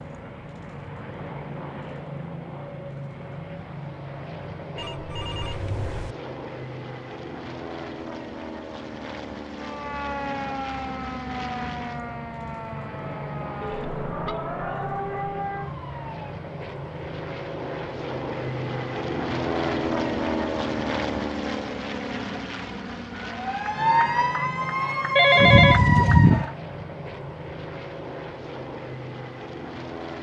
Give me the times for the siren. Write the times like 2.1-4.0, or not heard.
9.5-16.2, 23.2-26.6.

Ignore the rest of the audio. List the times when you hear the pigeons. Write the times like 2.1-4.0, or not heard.
not heard.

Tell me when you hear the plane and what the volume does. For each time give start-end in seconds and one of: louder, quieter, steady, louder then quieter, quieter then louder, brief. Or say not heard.
0.0-30.1 louder then quieter.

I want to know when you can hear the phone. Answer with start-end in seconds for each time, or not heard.
4.8-6.2, 13.6-14.5, 25.1-26.4.